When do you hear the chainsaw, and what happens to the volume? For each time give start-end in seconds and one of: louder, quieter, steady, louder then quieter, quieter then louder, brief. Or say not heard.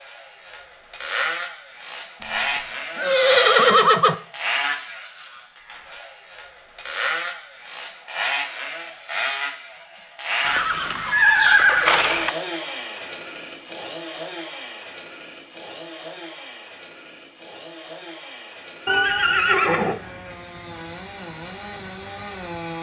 0.0-22.7 quieter.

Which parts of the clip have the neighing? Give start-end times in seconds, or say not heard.
3.0-4.2, 10.4-12.3, 18.9-20.0.